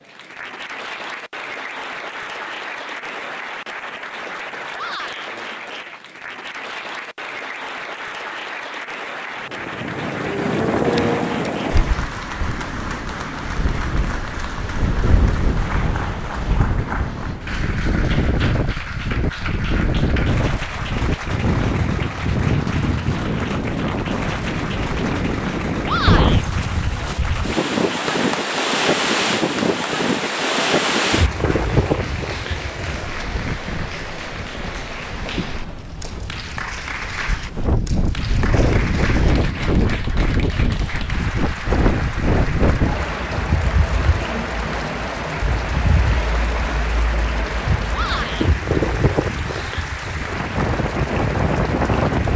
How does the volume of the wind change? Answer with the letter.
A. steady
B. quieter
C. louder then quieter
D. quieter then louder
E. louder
A.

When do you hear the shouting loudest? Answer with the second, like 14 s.
26 s.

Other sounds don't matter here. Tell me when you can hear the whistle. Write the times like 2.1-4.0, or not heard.
not heard.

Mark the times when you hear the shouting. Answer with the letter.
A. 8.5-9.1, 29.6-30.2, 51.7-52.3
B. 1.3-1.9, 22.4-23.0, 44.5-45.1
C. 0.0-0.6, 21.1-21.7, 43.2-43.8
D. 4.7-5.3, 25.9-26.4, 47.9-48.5
D.